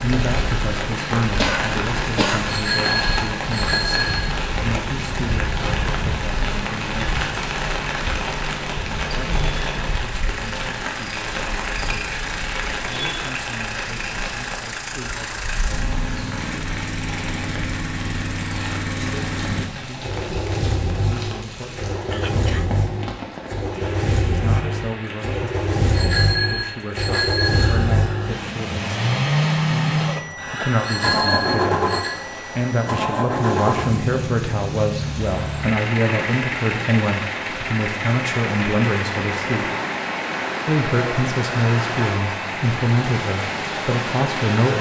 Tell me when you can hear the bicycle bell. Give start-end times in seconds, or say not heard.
2.5-4.2, 25.9-27.7, 30.9-32.1.